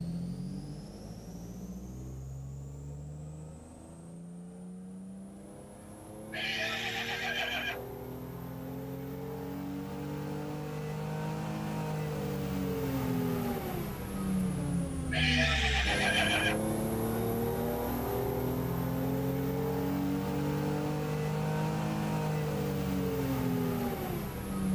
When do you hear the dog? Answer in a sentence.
You can't hear the dog here.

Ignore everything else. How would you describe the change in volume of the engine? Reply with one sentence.
The loudness of the engine goes up.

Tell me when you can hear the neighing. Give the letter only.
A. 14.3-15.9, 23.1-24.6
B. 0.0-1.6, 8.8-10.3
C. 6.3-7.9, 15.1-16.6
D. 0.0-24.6
C.